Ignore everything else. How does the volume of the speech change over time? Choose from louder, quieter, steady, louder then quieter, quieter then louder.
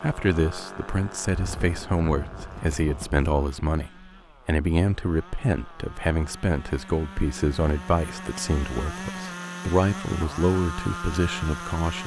steady.